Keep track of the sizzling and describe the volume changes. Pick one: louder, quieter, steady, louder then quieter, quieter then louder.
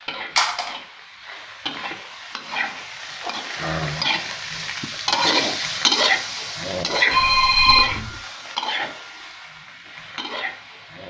louder then quieter.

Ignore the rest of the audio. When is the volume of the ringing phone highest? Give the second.
8 s.